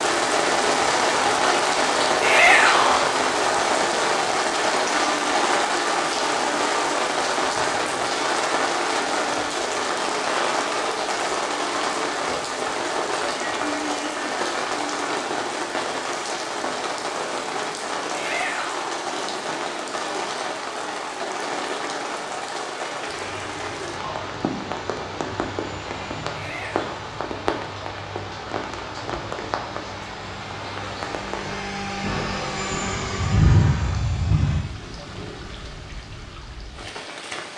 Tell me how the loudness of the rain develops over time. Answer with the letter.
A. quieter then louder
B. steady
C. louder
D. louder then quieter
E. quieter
E.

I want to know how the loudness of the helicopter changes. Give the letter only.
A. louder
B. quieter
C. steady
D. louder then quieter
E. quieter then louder
A.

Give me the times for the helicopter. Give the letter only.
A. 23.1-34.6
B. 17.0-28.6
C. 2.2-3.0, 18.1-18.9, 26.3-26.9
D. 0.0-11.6
A.